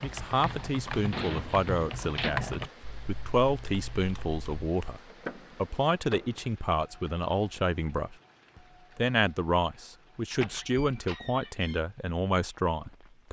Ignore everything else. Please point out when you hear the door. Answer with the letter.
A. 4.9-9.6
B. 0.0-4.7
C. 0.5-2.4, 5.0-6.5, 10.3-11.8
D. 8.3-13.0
C.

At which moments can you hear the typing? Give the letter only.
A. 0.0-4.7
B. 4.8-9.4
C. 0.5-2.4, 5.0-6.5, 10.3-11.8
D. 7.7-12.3
A.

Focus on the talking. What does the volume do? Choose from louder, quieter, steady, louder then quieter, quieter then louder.
steady.